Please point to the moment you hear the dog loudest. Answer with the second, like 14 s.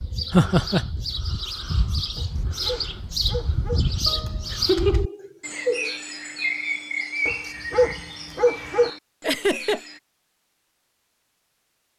8 s.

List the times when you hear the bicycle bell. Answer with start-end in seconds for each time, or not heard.
not heard.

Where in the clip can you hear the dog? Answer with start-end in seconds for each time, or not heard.
2.1-3.9, 7.2-8.9.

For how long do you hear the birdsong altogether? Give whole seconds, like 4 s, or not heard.
10 s.